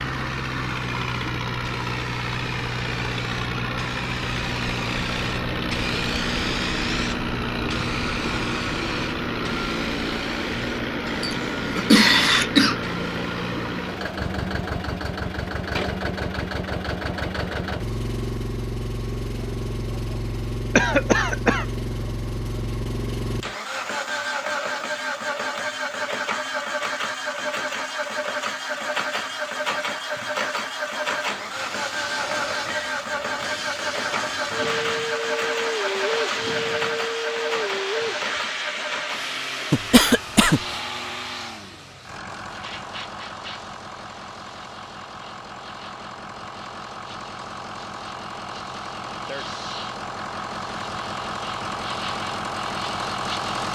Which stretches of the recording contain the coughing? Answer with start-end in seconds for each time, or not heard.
11.2-12.8, 20.8-21.6, 39.7-40.8.